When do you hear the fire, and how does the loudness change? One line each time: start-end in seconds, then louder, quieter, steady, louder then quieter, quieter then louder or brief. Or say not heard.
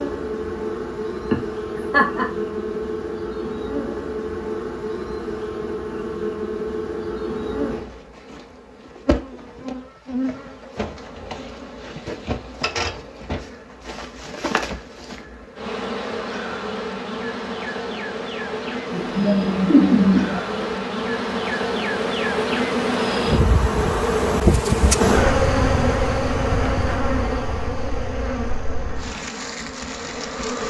not heard.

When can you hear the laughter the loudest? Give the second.
20 s.